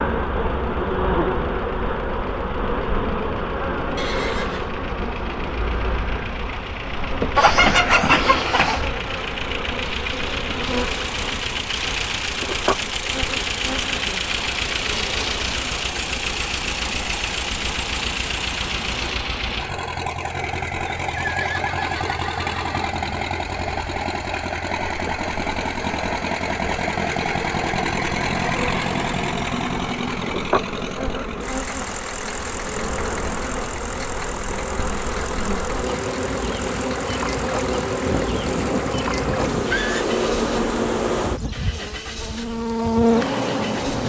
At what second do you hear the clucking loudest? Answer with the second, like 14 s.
8 s.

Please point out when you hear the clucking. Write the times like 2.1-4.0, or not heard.
7.3-8.9.